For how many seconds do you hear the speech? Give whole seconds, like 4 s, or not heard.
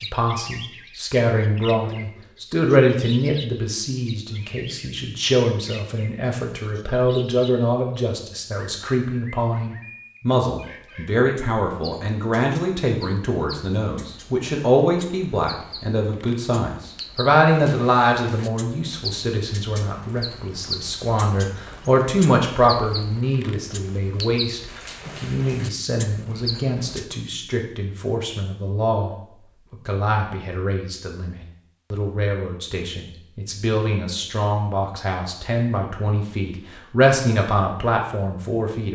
39 s.